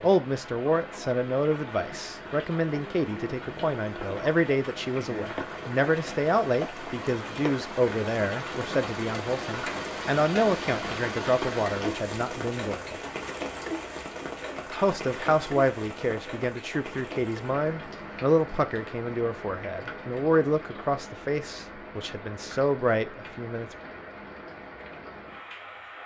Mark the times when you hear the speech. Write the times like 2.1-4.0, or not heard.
0.0-13.0, 14.7-23.7.